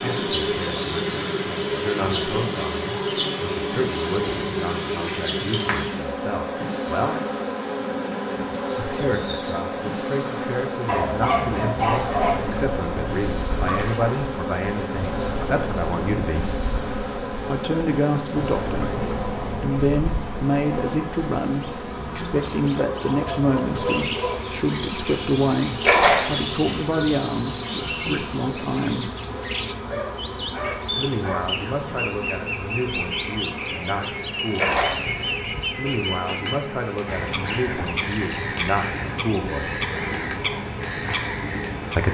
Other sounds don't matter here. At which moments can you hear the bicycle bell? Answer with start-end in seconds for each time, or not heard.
not heard.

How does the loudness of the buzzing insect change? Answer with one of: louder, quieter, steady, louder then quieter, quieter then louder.
quieter.